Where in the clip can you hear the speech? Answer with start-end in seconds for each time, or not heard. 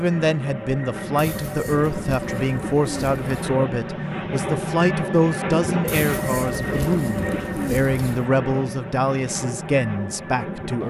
0.0-10.8.